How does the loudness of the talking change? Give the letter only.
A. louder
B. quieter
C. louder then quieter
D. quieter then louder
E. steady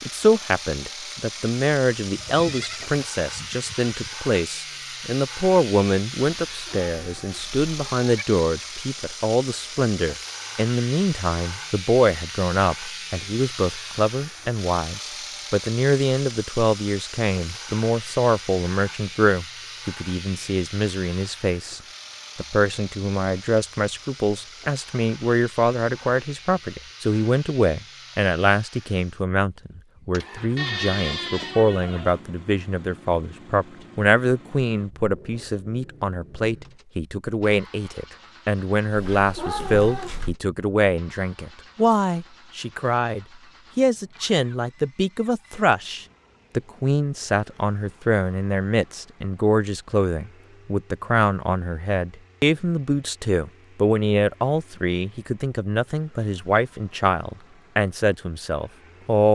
E.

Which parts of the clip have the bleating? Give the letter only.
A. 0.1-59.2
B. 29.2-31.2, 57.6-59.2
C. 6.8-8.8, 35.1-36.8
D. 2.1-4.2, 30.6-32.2
D.